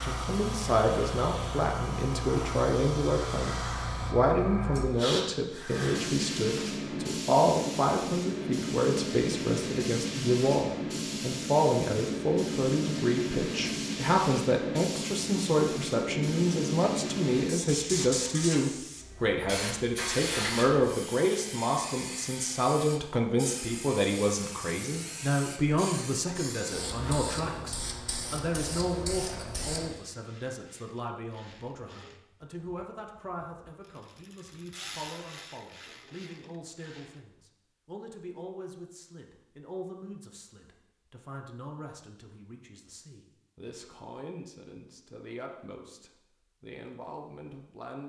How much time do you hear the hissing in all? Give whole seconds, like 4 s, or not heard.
30 s.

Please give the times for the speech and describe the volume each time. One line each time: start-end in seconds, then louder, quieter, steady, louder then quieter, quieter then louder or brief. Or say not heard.
0.0-48.0 quieter.